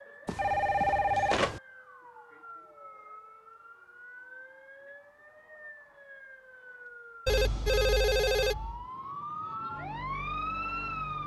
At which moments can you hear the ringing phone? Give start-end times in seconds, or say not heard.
0.2-1.6, 7.2-8.8.